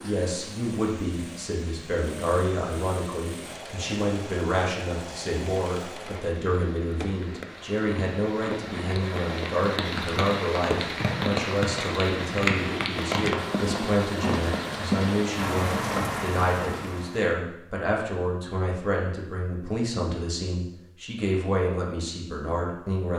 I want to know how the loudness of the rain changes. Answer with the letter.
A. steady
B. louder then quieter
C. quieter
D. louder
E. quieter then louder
D.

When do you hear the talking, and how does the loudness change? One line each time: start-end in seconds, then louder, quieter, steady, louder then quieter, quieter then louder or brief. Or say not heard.
0.0-23.1 steady.